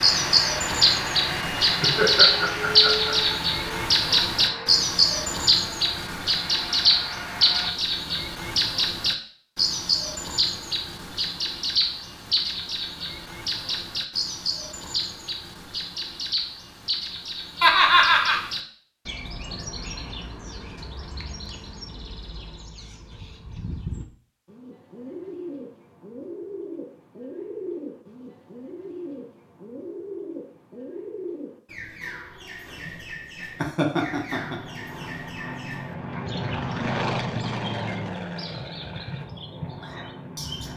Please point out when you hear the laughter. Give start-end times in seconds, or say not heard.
1.6-3.4, 17.6-18.4, 33.5-34.6.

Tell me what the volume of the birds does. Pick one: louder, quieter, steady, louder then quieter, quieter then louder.
quieter.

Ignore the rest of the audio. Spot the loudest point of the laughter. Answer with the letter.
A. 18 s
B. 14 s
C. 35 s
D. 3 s
A.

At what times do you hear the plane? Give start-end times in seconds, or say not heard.
0.0-7.8, 34.3-40.7.